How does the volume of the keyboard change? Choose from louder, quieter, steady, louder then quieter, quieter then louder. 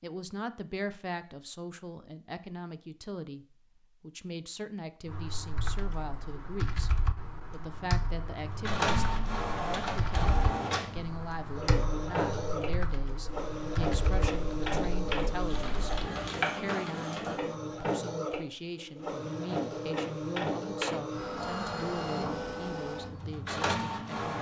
steady.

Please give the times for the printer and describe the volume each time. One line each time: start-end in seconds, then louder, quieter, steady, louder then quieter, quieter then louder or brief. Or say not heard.
8.4-24.3 steady.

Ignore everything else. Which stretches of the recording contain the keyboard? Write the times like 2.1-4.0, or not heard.
5.0-16.1.